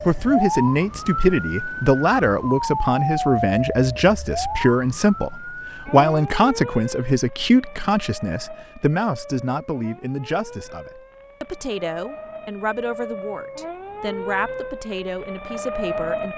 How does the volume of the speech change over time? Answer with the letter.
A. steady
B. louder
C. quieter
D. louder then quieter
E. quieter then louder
C.